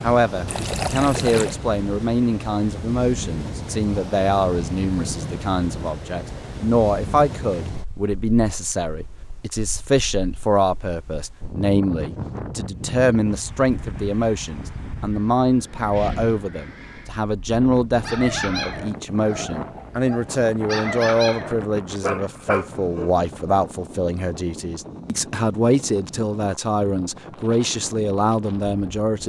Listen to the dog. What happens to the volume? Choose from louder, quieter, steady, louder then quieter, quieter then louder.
quieter then louder.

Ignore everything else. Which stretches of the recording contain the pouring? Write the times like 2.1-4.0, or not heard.
0.5-1.6.